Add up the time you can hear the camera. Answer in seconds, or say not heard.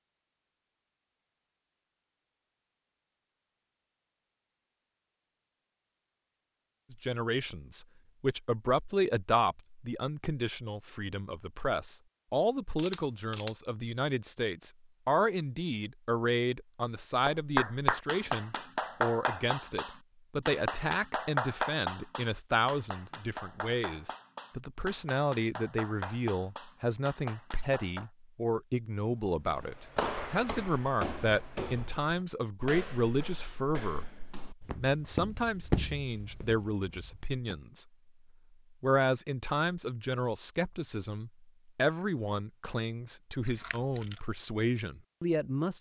2 s.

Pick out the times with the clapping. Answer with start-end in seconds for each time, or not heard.
17.2-28.1.